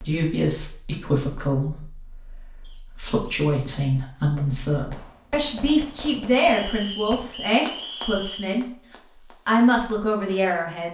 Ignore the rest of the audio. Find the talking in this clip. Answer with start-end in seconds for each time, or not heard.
0.0-8.7, 9.4-10.8.